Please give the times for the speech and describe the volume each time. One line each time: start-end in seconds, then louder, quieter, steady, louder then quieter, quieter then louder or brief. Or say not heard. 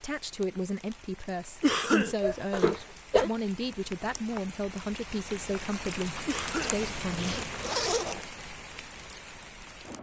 0.0-7.5 steady.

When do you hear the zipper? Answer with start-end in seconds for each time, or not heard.
2.2-3.3, 6.6-8.2.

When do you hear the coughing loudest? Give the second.
2 s.